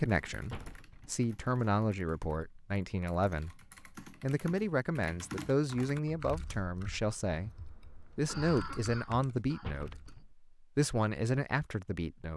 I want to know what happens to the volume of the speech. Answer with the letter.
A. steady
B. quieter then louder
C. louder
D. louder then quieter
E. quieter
A.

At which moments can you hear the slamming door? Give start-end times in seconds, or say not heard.
0.5-1.2, 9.6-10.3.